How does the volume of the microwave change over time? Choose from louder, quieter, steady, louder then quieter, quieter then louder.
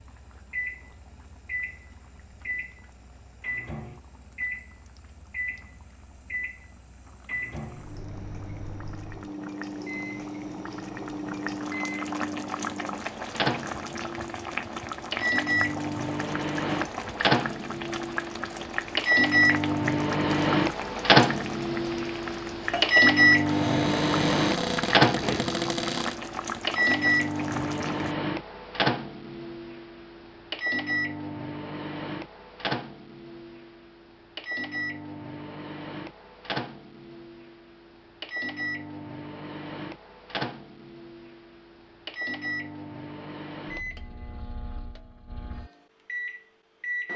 louder then quieter.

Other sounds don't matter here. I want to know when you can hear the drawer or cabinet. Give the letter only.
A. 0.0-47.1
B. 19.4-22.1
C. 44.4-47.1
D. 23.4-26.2
D.